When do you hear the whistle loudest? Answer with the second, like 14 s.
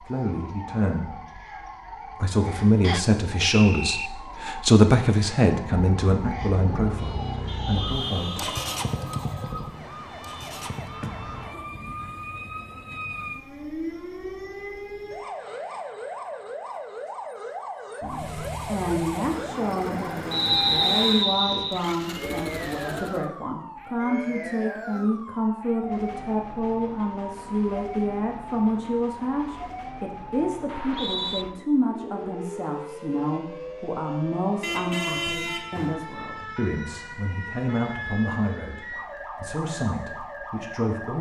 21 s.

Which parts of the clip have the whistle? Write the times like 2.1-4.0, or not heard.
2.8-4.1, 20.3-21.8, 30.6-31.4.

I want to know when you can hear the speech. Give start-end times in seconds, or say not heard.
0.0-8.4, 18.0-41.1.